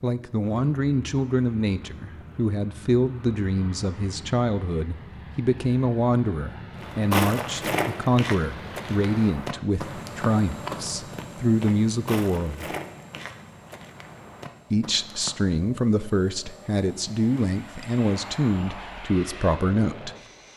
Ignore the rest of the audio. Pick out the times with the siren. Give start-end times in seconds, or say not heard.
not heard.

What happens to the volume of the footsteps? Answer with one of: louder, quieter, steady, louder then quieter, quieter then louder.
quieter.